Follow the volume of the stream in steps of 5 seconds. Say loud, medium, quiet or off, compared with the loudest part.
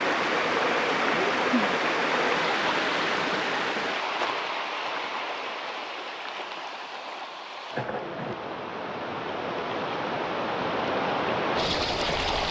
loud, medium, loud.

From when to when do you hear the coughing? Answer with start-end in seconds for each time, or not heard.
1.1-1.8, 7.8-8.3.